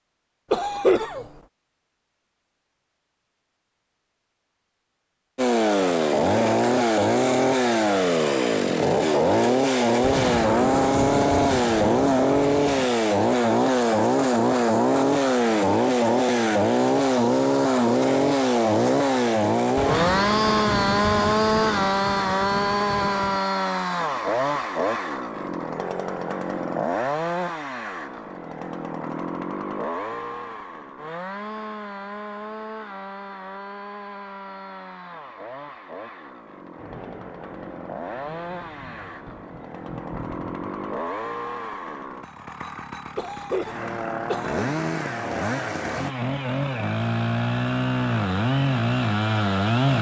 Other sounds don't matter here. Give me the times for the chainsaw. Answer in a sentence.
The chainsaw can be heard from 5.3 to 49.9 s.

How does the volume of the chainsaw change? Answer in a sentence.
The loudness of the chainsaw goes down, then up.